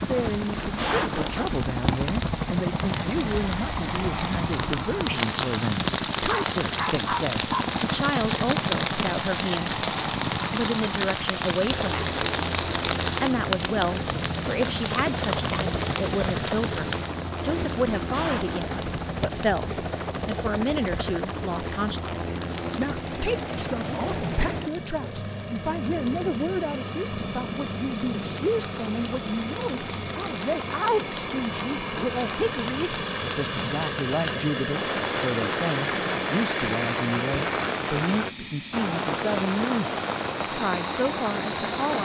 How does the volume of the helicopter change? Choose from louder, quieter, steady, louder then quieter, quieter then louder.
steady.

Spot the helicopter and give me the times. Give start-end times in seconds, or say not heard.
0.0-42.0.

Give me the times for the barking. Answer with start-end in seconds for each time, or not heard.
6.2-7.8.